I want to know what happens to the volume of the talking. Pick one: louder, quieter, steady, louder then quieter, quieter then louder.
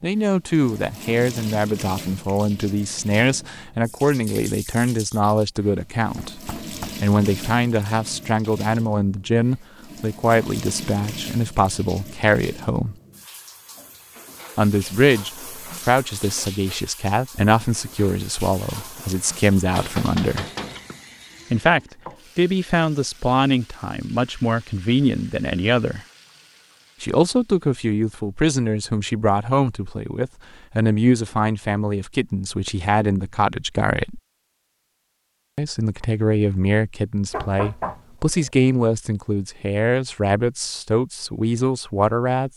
steady.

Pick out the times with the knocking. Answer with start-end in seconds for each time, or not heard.
6.2-7.0, 19.8-20.9, 37.3-38.5.